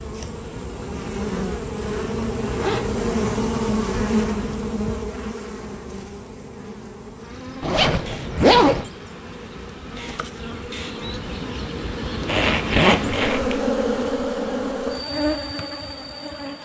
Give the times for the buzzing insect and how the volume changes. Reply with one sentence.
You can hear the buzzing insect from 0.0 to 16.6 s, getting quieter then louder.